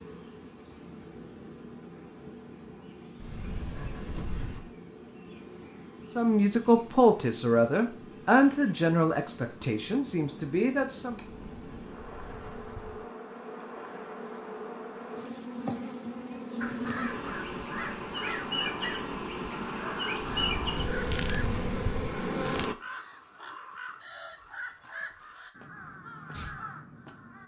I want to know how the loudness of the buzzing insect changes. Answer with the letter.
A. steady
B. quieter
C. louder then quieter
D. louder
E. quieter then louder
D.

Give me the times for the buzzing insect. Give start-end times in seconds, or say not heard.
0.0-22.8.